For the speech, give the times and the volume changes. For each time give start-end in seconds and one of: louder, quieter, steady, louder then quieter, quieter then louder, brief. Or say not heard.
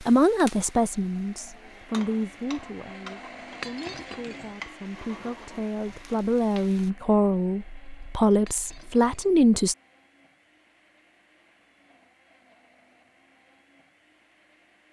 0.0-9.8 quieter then louder.